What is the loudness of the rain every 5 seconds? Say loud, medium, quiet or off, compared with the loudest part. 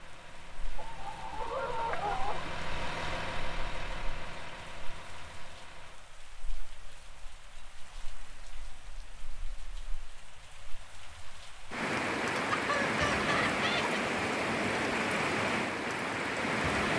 quiet, quiet, loud, loud.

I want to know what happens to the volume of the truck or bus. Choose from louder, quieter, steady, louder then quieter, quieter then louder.
louder then quieter.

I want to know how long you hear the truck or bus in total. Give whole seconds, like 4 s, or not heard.
6 s.